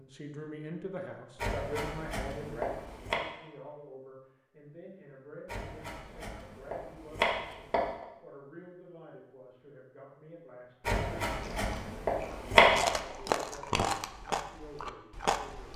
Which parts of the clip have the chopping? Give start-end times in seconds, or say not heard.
1.4-3.2, 5.5-8.1, 10.8-12.9.